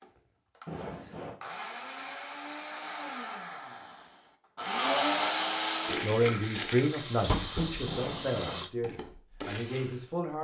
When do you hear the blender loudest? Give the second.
5 s.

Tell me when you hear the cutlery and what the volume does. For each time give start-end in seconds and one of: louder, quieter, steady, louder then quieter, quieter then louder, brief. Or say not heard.
not heard.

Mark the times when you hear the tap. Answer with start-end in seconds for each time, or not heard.
6.4-8.7.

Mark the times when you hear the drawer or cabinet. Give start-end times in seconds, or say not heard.
0.7-1.4, 7.8-8.7.